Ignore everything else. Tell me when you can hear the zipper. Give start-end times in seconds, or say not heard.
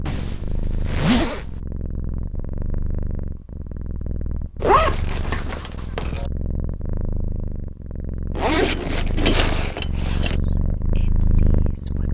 0.1-1.6, 4.6-6.3, 8.3-10.3.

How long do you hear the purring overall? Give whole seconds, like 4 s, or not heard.
12 s.